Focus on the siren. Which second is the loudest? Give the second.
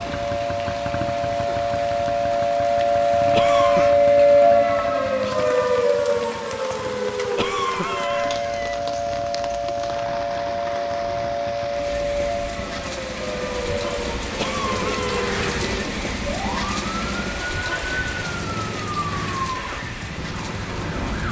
4 s.